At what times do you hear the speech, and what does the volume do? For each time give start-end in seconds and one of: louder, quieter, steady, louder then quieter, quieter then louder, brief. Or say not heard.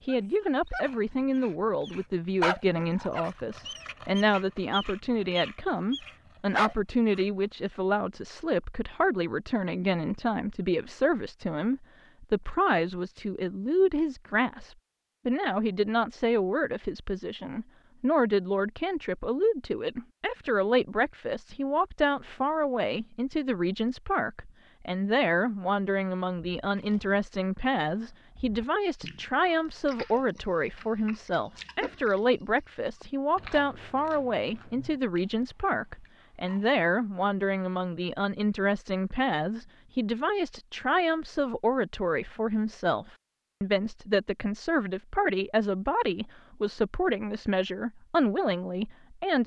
0.1-49.4 steady.